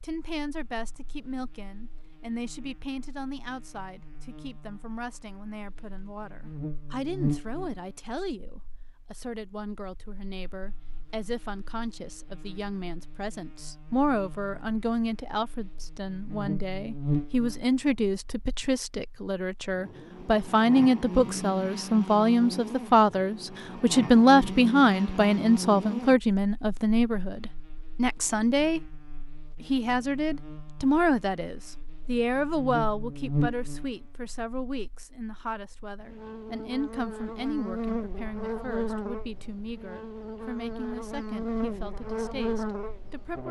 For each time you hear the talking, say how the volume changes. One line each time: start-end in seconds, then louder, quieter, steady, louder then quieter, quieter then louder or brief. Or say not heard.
0.0-28.8 louder
29.6-43.4 quieter.